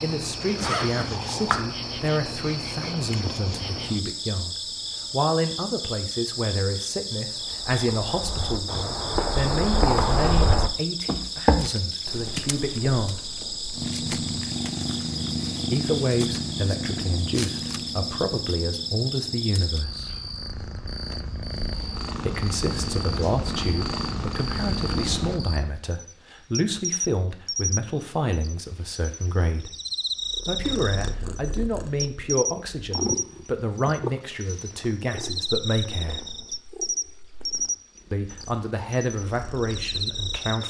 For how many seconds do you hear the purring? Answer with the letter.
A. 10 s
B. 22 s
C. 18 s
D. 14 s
B.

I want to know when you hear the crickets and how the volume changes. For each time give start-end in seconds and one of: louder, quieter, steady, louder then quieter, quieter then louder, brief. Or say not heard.
0.0-40.6 steady.